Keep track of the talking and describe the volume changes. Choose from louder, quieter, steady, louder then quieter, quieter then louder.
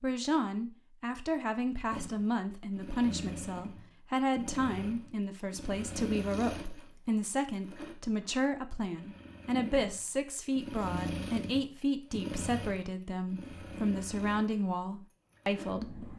steady.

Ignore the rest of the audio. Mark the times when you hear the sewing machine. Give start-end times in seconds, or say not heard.
1.9-16.1.